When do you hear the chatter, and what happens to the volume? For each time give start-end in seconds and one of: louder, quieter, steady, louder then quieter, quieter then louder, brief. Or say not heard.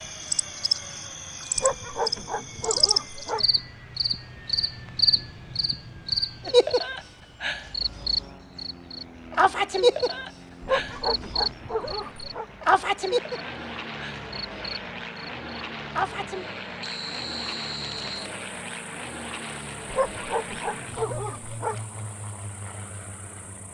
not heard.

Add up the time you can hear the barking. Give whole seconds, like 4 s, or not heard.
6 s.